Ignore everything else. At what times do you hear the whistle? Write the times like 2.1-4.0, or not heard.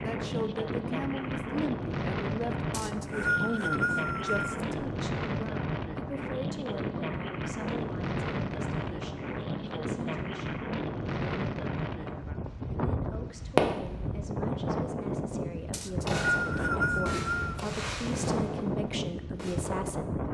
2.7-4.7, 15.7-17.6.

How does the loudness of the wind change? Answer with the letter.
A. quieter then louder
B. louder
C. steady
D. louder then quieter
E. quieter
C.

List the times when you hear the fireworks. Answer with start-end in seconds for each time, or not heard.
13.6-14.1, 16.1-19.9.